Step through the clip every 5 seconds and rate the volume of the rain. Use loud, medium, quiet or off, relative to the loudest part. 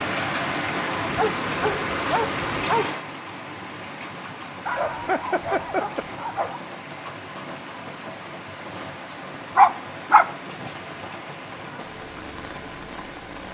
loud, medium, medium.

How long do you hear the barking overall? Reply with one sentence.
You can hear the barking for 5 seconds altogether.